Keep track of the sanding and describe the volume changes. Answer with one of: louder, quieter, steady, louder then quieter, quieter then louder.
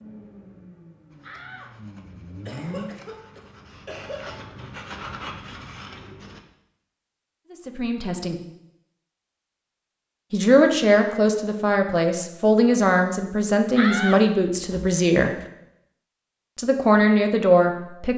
louder.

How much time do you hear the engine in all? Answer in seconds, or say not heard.
3 s.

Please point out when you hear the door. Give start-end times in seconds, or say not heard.
1.2-1.9, 13.8-15.4.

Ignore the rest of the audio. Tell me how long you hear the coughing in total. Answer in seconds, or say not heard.
2 s.